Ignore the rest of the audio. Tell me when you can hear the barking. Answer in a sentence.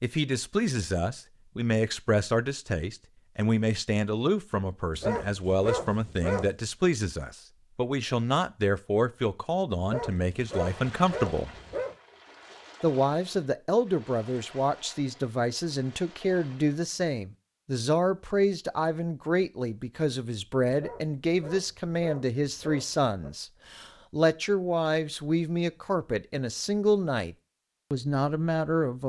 You can hear the barking from 4.9 to 6.5 s, from 9.8 to 11.9 s and from 20.7 to 23.3 s.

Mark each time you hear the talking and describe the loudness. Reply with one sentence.
The talking can be heard from 0.0 to 11.5 s, at a steady volume; and from 12.8 to 29.0 s, at a steady volume.